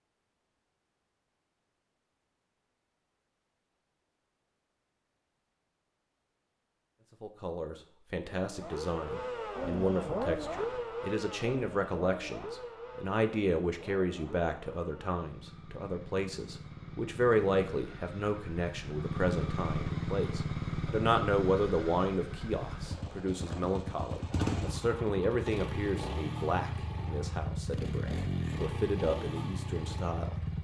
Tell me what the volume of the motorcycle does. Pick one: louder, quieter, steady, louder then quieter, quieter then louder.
quieter then louder.